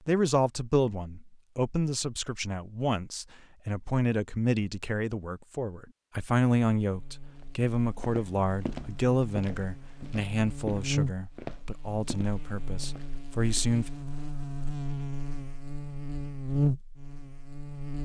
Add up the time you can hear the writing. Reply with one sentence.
You can't hear the writing here.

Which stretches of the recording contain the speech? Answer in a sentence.
The speech can be heard from 0.1 to 13.9 s.